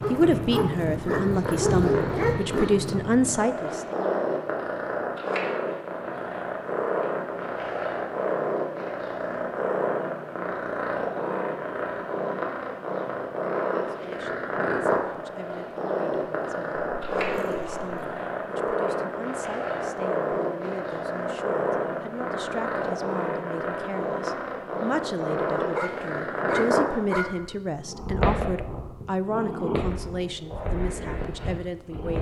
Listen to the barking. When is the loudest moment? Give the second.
2 s.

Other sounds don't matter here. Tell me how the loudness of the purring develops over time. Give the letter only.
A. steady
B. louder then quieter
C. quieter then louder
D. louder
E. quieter
A.